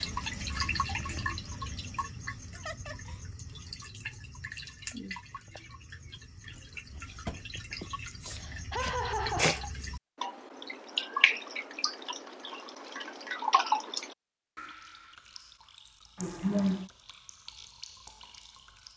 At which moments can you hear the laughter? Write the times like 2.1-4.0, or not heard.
2.5-3.2, 7.7-9.7, 16.1-16.9.